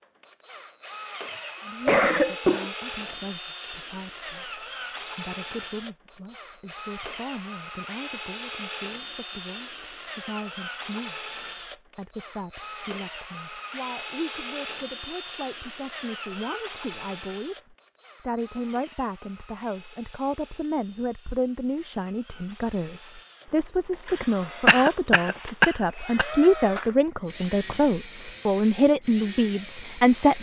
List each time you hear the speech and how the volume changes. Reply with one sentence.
You can hear the speech from 1.6 to 30.3 s, getting louder.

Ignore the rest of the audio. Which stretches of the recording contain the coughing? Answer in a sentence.
You can hear the coughing from 1.2 to 3.1 s and from 24.6 to 26.2 s.